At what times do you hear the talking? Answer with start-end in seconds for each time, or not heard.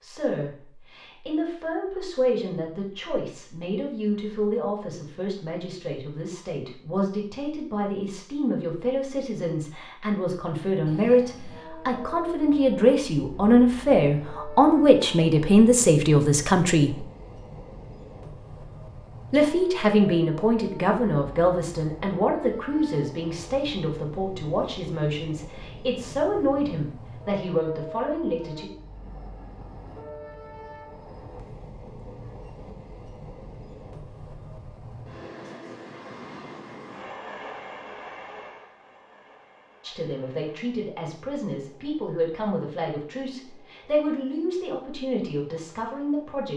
0.0-17.0, 19.3-28.6, 39.8-46.5.